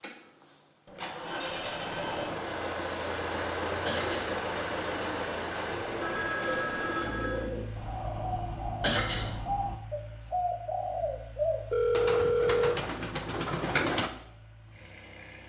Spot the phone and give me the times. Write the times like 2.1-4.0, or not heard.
0.8-2.4, 6.0-7.5, 11.7-12.8.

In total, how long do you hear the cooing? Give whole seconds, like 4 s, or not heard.
10 s.